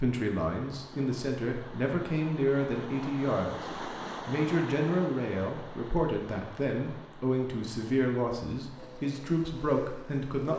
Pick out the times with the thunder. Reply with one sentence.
You can't hear the thunder here.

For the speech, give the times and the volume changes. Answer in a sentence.
You can hear the speech from 0.0 to 10.5 s, at a steady volume.